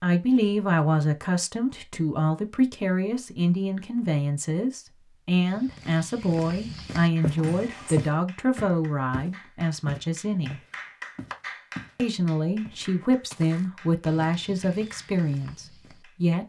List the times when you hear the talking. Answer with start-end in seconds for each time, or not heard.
0.0-10.6, 11.9-16.4.